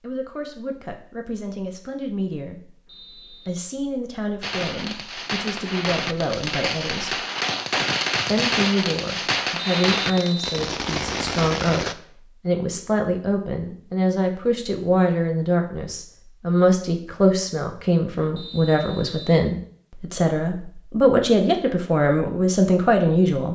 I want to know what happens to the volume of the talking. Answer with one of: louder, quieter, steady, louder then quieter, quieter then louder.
louder.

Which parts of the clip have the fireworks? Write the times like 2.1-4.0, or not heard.
4.4-11.9.